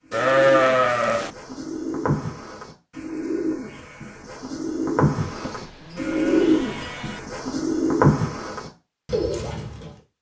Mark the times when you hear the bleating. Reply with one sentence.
The bleating can be heard from 0.1 to 1.3 s and from 5.2 to 7.2 s.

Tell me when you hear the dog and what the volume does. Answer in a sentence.
The dog can't be heard in this clip.